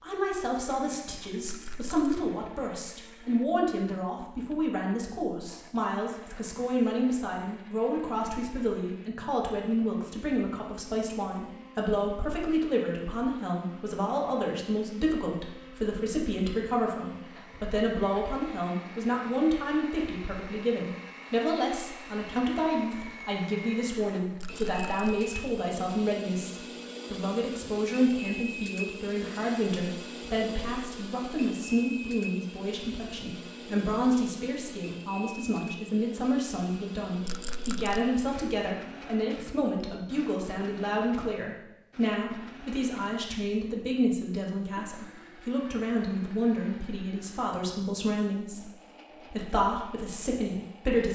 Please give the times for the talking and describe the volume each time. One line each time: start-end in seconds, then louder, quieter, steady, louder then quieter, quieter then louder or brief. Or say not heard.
0.0-48.7 steady
49.3-51.1 brief.